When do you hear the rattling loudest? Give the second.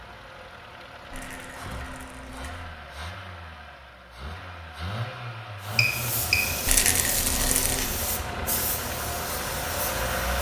7 s.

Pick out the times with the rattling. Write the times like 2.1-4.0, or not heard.
1.1-2.6, 6.7-7.9.